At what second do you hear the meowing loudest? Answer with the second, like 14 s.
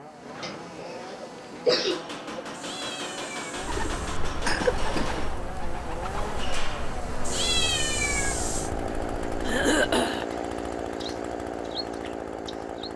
8 s.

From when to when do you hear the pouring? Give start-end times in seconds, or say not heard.
not heard.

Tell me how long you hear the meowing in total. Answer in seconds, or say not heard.
3 s.